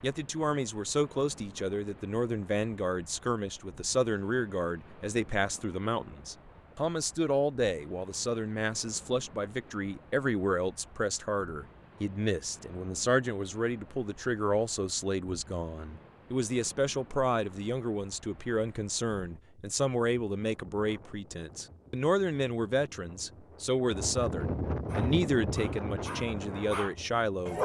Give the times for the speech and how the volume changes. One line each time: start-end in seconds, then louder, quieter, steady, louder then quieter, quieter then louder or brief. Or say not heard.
0.0-27.6 steady.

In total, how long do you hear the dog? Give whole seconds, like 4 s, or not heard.
3 s.